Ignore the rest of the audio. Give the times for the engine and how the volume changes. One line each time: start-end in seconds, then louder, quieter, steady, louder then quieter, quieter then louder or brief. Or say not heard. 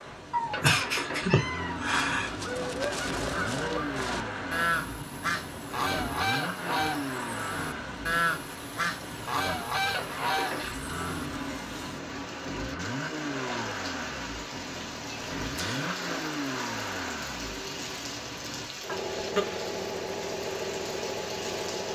0.0-21.9 steady.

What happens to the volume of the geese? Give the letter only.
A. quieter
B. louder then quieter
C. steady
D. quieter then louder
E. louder
C.